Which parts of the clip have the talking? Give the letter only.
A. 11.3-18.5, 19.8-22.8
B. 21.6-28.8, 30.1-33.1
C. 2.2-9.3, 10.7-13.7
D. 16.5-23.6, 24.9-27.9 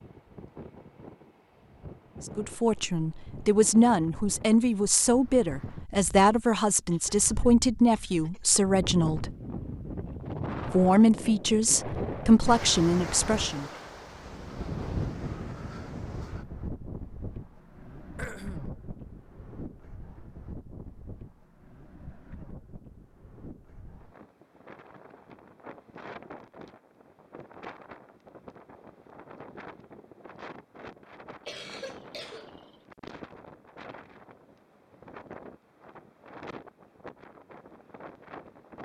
C.